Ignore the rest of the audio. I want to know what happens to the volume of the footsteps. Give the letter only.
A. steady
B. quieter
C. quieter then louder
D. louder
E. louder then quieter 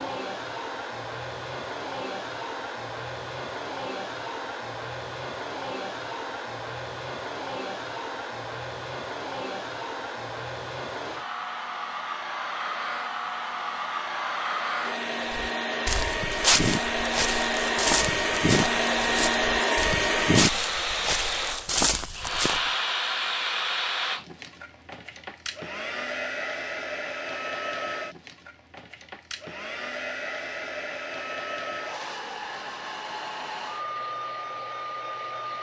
C.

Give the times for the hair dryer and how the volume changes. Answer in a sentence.
You can hear the hair dryer from 0.0 to 35.5 s, getting louder then quieter.